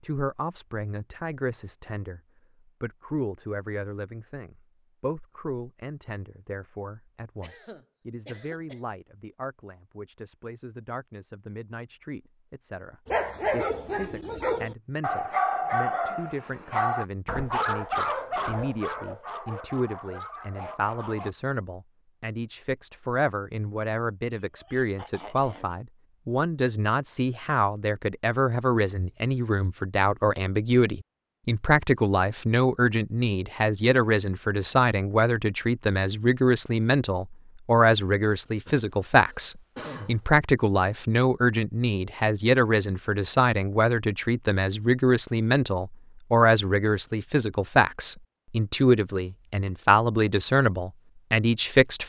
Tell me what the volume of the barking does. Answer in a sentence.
The volume of the barking goes down.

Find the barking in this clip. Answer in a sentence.
You can hear the barking from 13.1 to 21.4 s.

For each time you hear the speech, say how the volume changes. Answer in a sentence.
You can hear the speech briefly from 0.0 to 2.2 s; and from 2.8 to 52.0 s, getting louder.